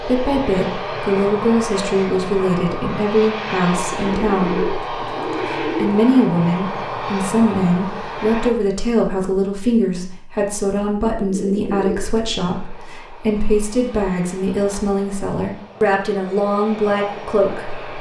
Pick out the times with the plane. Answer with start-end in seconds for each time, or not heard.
0.0-8.5, 12.4-17.9.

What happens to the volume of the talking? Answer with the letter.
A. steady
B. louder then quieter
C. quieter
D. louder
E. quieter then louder
A.